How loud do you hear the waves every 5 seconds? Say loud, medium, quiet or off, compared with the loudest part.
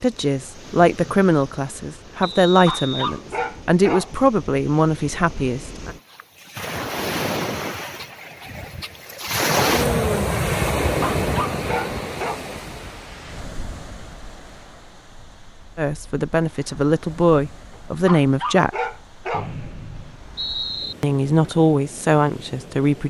quiet, loud, loud, quiet, quiet.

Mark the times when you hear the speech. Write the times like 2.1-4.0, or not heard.
0.0-6.0, 15.8-18.8, 21.0-23.0.